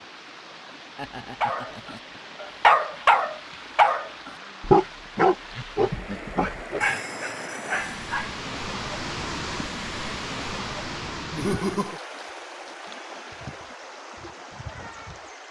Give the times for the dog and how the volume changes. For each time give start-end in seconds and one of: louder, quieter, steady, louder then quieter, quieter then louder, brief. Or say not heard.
1.4-8.3 quieter.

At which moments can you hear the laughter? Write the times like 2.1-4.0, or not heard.
0.9-2.2, 5.5-6.9, 11.3-12.0.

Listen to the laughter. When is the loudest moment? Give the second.
12 s.